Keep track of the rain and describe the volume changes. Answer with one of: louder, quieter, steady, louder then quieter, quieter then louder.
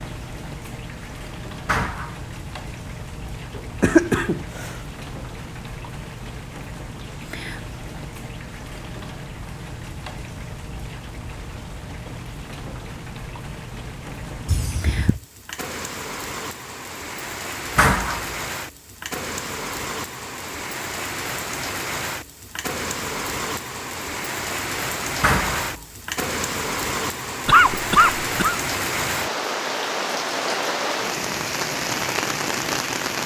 louder.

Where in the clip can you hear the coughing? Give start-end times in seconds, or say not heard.
3.5-4.8, 14.4-15.2, 27.4-28.6.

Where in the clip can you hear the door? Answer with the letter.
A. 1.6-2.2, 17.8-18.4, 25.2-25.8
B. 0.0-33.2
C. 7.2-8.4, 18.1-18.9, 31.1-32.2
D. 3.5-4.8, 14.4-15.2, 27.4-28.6
A.